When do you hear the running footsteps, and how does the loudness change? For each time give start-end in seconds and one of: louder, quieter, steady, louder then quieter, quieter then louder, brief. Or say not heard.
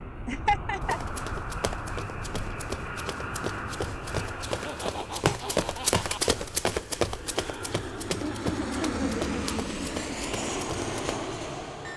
0.8-11.1 louder then quieter.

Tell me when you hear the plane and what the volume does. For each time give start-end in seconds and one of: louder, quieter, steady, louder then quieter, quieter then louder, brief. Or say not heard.
0.0-11.9 quieter then louder.